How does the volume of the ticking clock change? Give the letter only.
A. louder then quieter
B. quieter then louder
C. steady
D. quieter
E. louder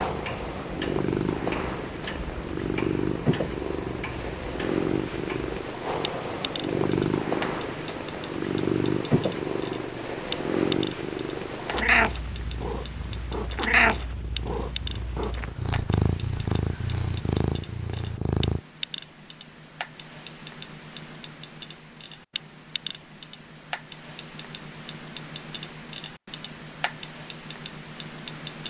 C.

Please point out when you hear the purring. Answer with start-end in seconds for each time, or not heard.
0.0-18.6.